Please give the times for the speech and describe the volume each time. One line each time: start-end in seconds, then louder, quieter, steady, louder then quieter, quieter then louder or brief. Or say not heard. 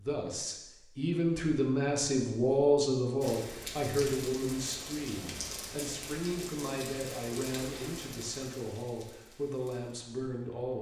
0.0-10.7 quieter.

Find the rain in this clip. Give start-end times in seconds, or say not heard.
3.2-10.7.